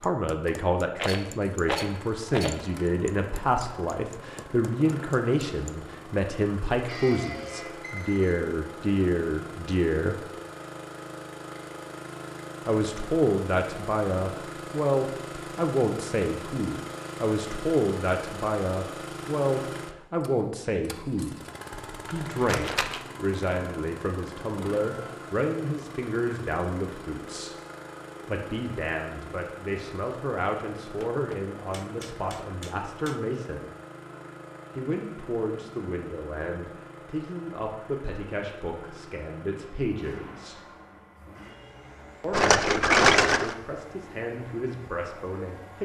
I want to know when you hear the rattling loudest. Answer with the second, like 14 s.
43 s.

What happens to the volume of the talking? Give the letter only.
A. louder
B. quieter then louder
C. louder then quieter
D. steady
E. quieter
E.